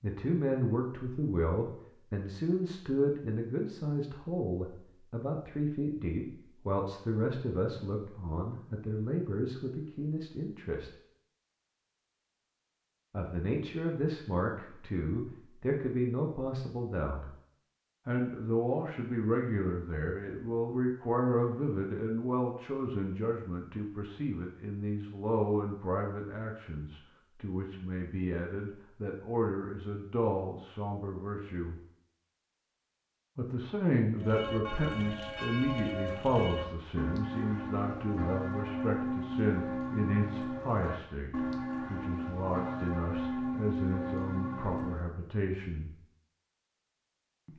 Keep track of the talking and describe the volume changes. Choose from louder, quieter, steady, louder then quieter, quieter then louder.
steady.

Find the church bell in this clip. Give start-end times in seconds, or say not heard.
34.1-45.1.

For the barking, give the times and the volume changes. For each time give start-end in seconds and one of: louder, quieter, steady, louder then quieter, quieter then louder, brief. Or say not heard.
not heard.